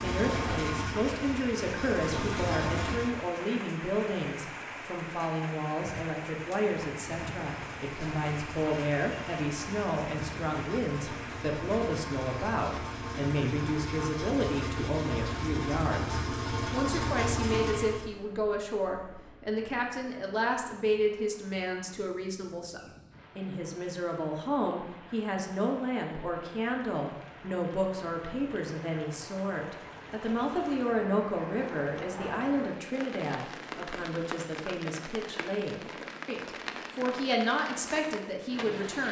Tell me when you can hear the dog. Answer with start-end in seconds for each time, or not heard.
not heard.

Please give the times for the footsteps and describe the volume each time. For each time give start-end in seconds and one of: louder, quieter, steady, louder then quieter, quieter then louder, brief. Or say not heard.
not heard.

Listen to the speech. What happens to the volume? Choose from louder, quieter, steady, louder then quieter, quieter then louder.
steady.